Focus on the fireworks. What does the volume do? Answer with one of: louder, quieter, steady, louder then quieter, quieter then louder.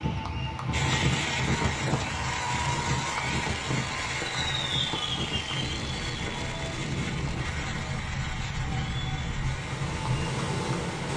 quieter.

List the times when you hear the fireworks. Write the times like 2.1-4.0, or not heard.
0.7-10.0.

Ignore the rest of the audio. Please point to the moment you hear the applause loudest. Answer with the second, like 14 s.
3 s.